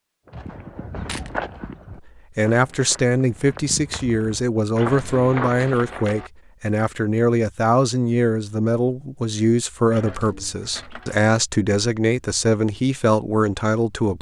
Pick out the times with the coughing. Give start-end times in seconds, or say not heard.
not heard.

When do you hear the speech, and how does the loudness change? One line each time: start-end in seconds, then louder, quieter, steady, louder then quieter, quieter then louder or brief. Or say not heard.
1.9-14.1 steady.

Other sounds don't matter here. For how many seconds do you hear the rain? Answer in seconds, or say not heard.
not heard.